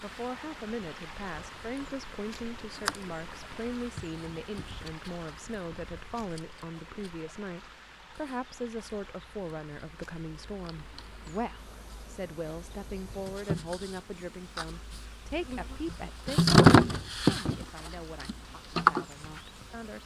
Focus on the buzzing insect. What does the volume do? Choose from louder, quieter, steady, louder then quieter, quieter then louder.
quieter then louder.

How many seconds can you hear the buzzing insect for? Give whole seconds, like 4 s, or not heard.
20 s.